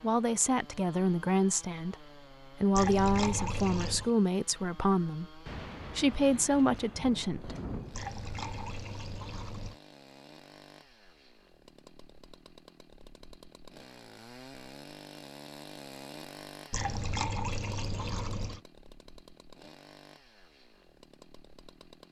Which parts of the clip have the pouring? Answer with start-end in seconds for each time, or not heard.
2.8-4.1, 7.9-9.8, 16.7-18.6.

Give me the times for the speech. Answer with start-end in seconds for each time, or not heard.
0.0-7.5.